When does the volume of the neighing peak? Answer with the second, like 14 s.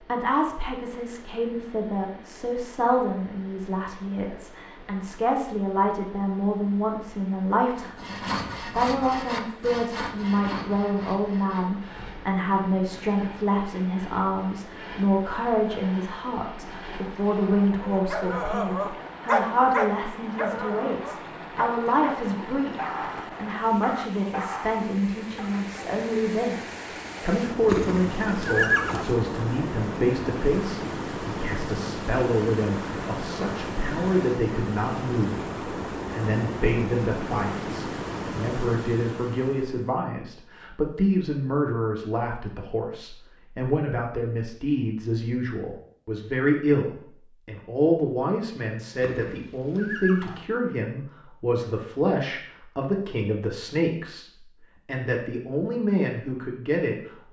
29 s.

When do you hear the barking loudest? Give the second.
19 s.